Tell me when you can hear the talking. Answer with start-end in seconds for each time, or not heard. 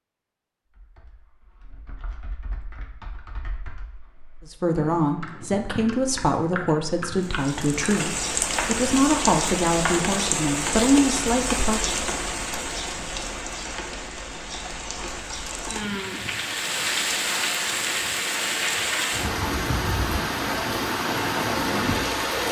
4.5-11.9.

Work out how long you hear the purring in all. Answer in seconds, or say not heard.
not heard.